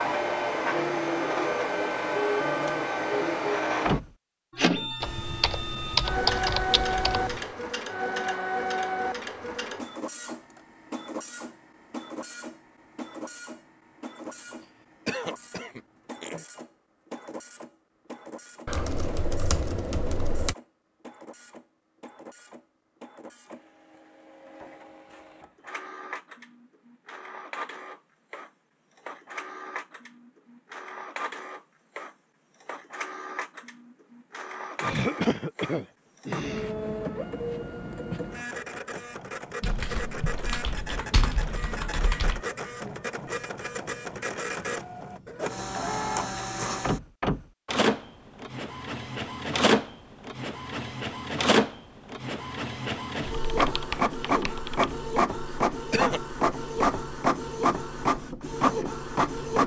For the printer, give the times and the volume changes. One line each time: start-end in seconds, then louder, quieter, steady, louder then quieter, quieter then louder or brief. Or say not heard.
0.0-59.6 quieter then louder.